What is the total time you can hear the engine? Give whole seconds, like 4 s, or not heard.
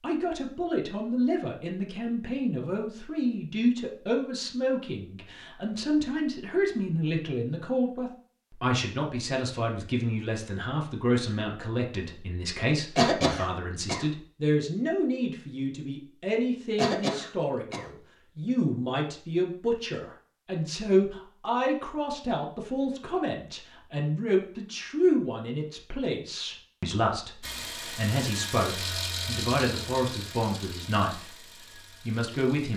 5 s.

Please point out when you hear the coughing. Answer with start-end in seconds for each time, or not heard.
12.9-14.1, 16.8-17.9.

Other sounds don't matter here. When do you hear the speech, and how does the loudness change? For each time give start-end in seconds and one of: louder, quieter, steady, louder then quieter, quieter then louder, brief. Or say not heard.
0.0-31.4 steady
32.0-32.7 brief.